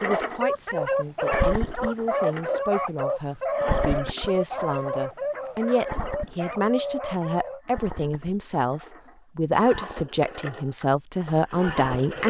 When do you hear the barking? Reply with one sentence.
The barking can be heard from 0.1 to 7.6 s.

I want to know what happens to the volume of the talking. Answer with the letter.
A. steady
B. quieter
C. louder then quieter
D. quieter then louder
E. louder
E.